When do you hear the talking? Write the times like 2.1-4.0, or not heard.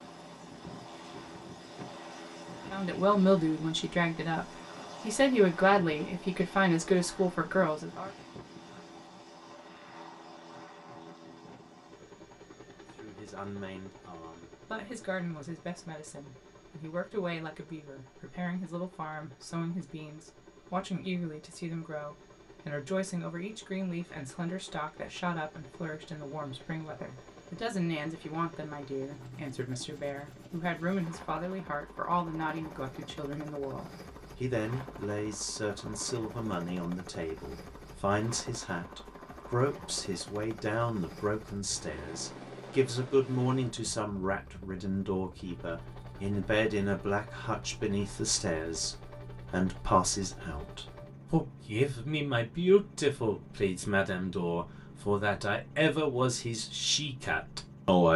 2.7-8.1, 13.0-58.1.